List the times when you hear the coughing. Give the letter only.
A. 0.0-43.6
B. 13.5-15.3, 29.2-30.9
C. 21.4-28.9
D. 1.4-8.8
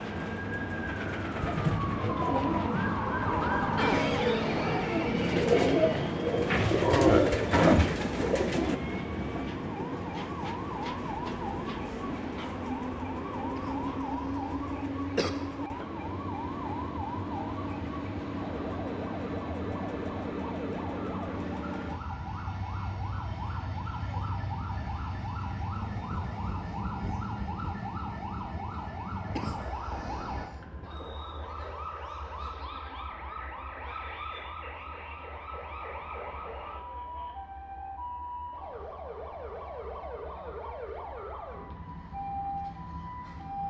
B.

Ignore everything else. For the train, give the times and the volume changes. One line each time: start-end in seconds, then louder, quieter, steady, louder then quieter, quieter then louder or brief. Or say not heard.
0.0-43.6 quieter.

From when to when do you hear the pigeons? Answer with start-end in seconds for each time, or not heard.
1.4-8.8.